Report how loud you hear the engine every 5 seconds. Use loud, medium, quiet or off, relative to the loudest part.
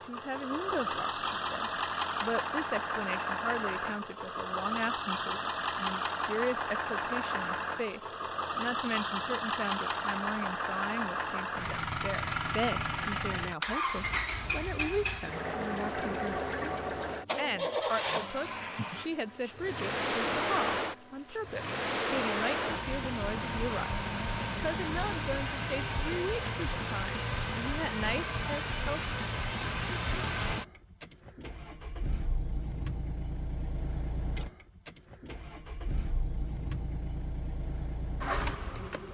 loud, loud, loud, loud, loud, loud, medium, medium.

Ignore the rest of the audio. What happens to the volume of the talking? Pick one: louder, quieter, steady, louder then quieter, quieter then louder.
steady.